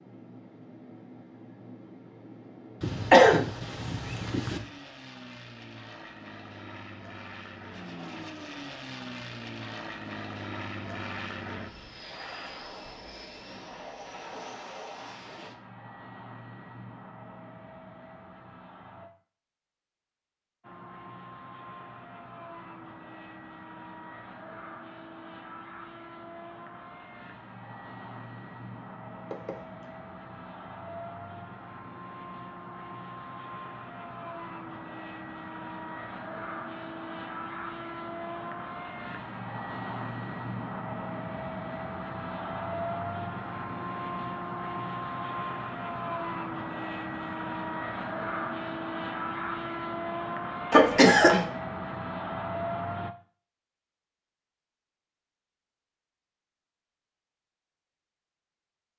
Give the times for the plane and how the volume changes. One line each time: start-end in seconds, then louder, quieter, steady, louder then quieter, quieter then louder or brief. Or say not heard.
0.0-19.1 louder then quieter
20.6-53.1 louder.